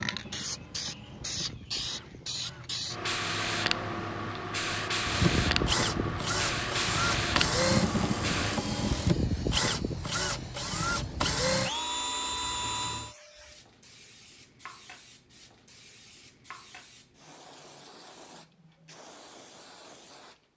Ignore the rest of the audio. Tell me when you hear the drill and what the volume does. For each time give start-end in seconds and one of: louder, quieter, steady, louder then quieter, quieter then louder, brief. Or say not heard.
0.0-13.2 louder.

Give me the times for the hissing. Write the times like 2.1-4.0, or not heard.
0.0-20.4.